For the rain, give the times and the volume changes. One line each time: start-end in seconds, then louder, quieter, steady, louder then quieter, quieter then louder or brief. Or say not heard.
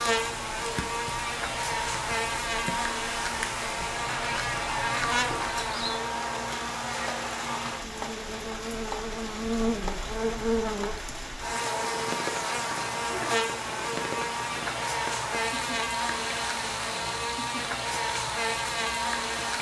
0.0-19.5 steady.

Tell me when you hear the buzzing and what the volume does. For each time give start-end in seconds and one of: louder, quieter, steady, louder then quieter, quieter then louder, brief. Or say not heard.
0.0-19.5 steady.